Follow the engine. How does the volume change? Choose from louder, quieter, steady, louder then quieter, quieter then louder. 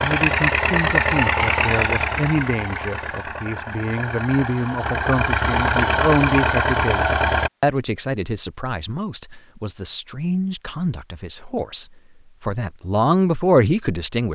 quieter then louder.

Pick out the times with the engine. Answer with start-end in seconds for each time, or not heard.
0.0-7.5.